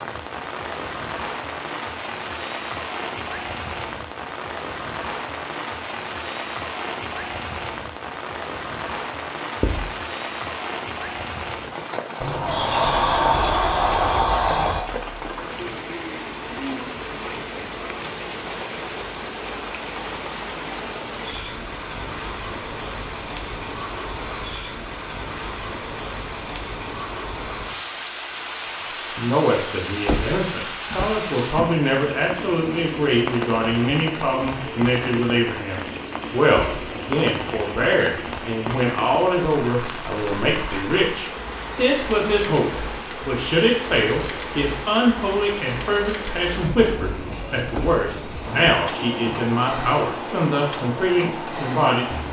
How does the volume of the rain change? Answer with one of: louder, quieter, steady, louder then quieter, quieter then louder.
steady.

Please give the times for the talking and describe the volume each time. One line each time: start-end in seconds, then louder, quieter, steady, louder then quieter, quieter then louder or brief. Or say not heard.
29.1-52.1 steady.